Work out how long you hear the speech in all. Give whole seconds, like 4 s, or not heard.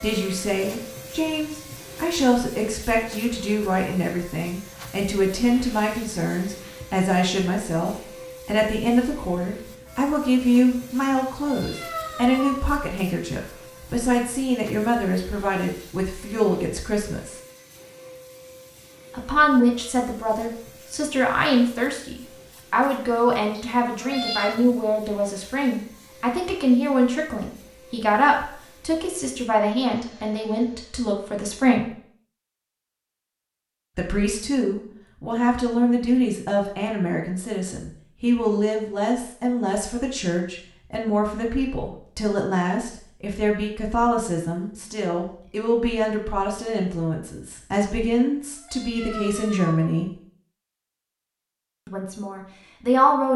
48 s.